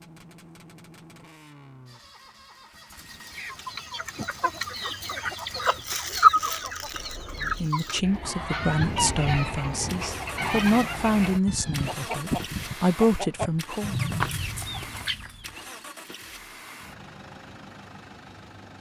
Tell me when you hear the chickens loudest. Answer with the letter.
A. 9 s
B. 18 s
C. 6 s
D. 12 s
C.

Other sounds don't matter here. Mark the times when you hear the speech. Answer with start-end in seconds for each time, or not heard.
7.4-14.0.